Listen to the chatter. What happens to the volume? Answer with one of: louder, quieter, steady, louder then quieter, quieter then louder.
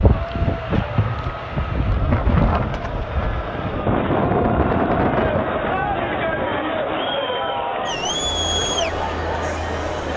louder.